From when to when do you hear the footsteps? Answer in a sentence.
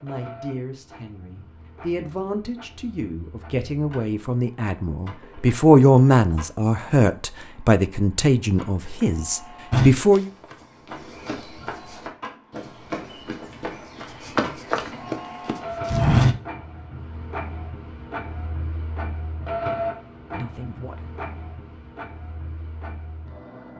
The footsteps can be heard from 9.7 to 16.4 s.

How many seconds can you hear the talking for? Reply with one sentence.
The talking can be heard for 11 seconds in total.